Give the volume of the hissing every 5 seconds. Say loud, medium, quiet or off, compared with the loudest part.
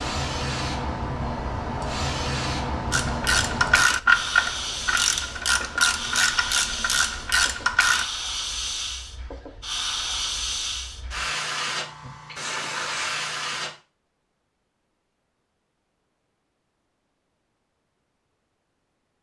loud, loud, loud, off.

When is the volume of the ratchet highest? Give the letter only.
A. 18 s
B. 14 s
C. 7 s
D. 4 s
D.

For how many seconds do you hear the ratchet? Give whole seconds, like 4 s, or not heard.
5 s.